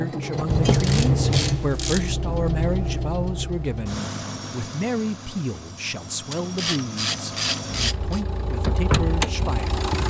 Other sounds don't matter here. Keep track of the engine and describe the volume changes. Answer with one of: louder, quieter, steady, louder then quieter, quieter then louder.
quieter then louder.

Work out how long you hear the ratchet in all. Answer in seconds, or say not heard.
3 s.